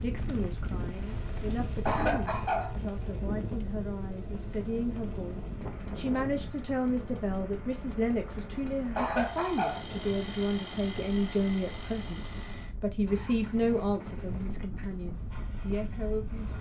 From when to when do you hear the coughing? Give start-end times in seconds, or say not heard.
1.9-2.8, 8.9-9.8.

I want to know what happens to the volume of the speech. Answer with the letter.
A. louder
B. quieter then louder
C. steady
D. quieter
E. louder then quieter
A.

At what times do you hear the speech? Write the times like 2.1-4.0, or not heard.
0.0-16.5.